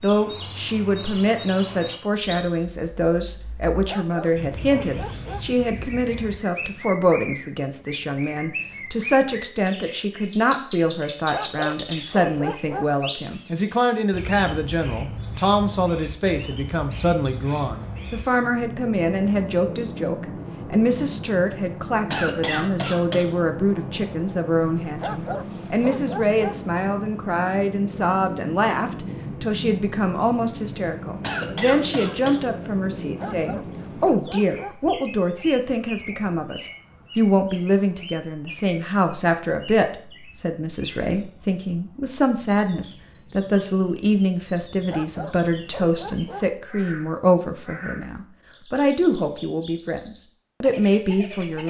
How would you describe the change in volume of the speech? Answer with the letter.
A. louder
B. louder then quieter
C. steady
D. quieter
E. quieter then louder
C.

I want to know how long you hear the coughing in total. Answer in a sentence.
The coughing can be heard for 3 seconds in total.